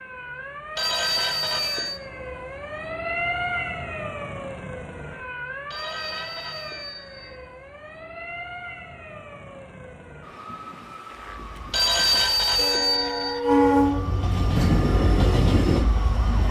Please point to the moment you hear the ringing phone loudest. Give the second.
12 s.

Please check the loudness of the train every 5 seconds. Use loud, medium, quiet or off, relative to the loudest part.
off, off, loud, loud.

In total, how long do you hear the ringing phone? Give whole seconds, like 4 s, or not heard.
5 s.